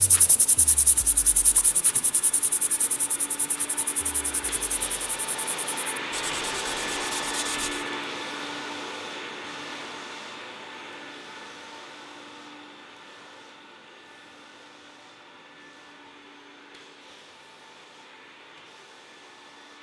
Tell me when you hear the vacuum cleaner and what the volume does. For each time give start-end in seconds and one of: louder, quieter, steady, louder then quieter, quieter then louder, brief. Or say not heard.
0.1-19.7 louder then quieter.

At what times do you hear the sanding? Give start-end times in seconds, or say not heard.
0.0-7.9.